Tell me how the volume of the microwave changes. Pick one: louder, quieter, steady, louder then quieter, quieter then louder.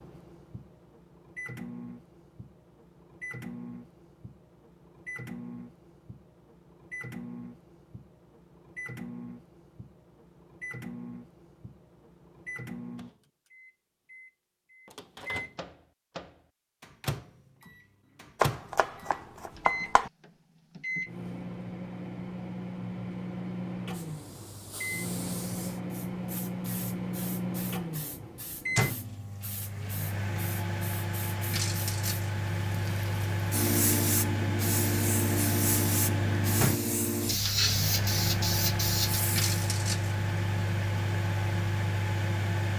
louder.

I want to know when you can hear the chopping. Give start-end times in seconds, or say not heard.
18.4-20.1.